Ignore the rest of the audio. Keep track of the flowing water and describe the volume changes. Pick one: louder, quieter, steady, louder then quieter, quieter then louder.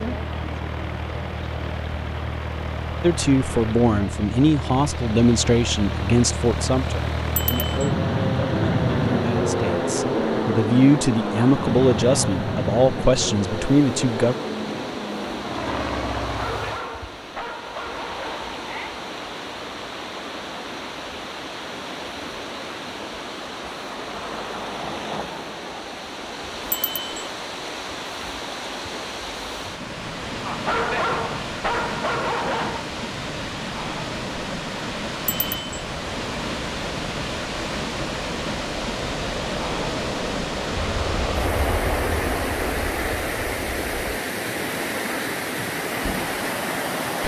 louder.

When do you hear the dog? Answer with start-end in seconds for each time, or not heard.
16.3-19.0, 30.4-32.9.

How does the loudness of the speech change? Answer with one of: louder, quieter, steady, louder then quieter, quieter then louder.
quieter then louder.